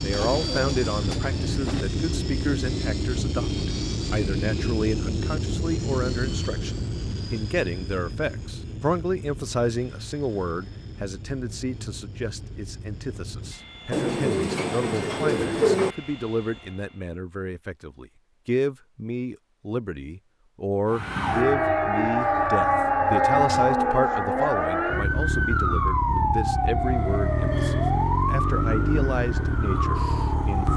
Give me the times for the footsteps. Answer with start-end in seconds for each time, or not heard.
not heard.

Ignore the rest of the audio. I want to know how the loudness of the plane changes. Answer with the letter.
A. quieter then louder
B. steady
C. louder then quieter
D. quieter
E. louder
D.